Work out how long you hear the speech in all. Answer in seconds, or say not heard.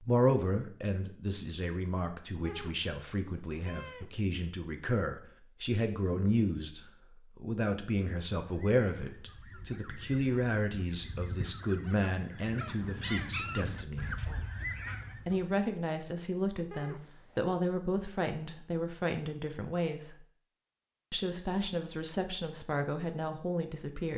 22 s.